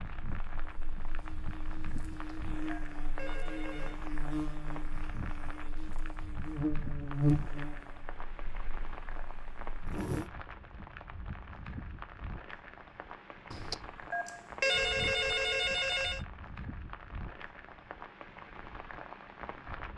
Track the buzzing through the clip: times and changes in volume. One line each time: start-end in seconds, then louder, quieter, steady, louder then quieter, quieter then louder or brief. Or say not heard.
0.1-10.2 louder then quieter.